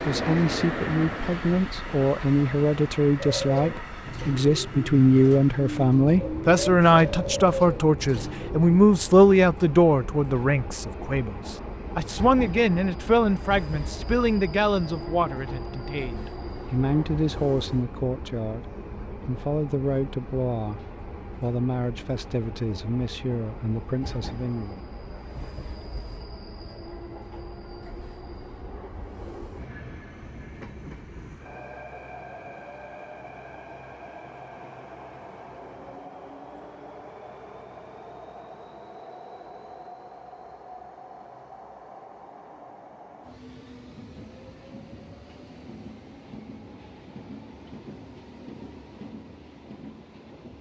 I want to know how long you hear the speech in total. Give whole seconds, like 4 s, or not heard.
24 s.